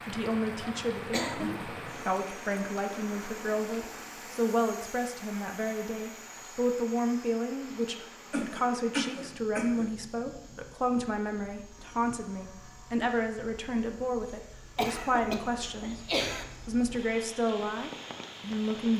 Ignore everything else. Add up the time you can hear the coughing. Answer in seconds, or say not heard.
4 s.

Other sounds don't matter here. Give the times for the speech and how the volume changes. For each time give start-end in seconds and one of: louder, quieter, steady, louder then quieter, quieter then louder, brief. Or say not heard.
0.0-16.0 steady
16.6-18.9 brief.